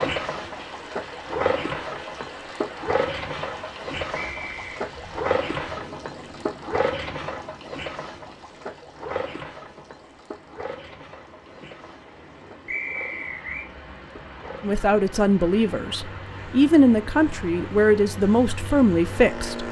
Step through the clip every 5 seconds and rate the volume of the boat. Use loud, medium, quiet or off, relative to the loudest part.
loud, loud, quiet, medium.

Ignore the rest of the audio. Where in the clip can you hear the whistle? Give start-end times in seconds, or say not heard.
4.1-4.8, 12.7-13.7.